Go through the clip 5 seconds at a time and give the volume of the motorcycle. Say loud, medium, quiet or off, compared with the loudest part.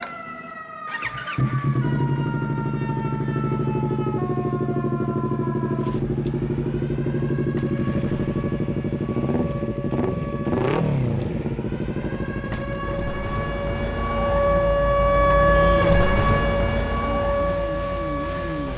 loud, loud, loud, medium.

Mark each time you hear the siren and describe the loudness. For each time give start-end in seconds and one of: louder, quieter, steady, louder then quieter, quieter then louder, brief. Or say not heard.
0.0-18.7 louder.